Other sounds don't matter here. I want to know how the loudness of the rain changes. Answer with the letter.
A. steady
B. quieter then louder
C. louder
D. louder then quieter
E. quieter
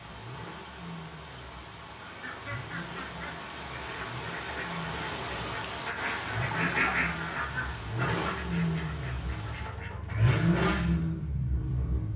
D.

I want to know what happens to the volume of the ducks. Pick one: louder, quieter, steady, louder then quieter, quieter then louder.
louder then quieter.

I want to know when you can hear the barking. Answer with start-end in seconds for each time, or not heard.
not heard.